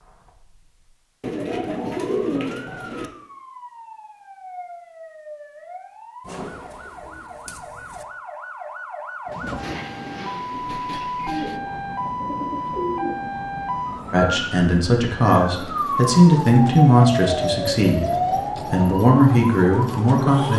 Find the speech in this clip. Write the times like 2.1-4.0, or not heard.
14.1-20.5.